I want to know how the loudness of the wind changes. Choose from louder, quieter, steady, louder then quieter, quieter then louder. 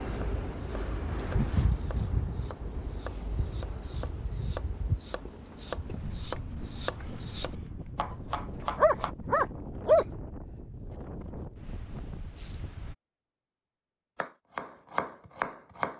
quieter.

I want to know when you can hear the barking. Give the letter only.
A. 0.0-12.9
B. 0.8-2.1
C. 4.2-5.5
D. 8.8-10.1
D.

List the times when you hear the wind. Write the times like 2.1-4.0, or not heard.
0.0-12.9.